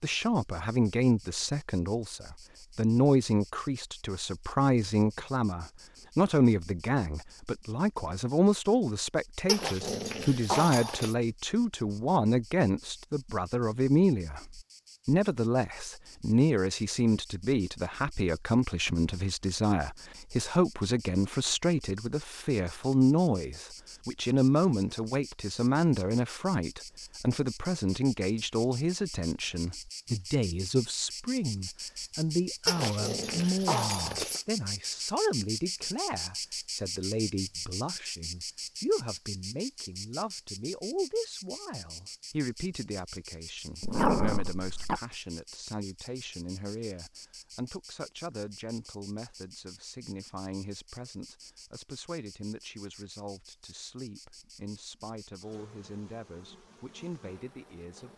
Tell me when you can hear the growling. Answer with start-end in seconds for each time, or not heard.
9.4-11.2, 32.6-34.4, 43.8-45.0.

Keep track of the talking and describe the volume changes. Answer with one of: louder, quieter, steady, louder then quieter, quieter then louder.
quieter.